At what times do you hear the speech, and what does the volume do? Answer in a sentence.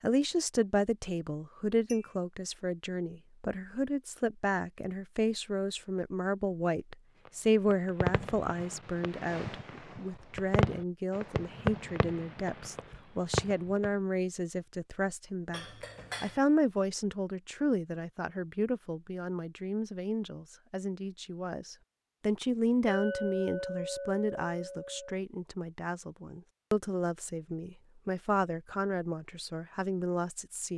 The speech can be heard from 0.0 to 30.7 s, at a steady volume.